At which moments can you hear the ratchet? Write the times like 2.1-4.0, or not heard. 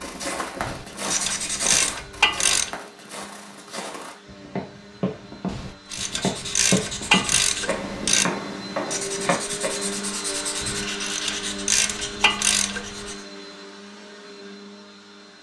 0.6-2.8, 5.5-8.2, 10.6-13.1.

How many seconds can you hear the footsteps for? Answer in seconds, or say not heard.
10 s.